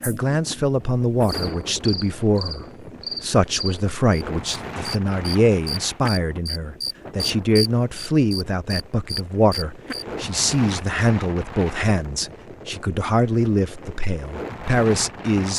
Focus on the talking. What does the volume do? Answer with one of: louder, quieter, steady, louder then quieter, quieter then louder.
steady.